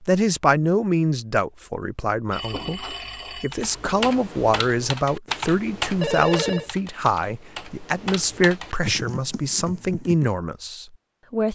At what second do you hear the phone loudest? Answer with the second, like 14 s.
6 s.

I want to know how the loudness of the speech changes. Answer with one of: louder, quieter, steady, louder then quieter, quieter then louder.
steady.